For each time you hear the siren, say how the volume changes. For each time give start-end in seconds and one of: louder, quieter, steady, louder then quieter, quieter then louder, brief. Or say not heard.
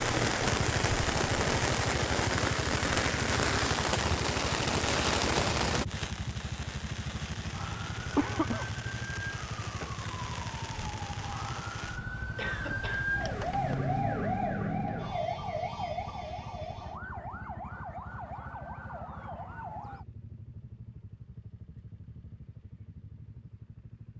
7.5-20.1 louder then quieter.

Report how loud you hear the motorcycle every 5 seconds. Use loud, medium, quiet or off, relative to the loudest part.
loud, loud, medium, medium, quiet.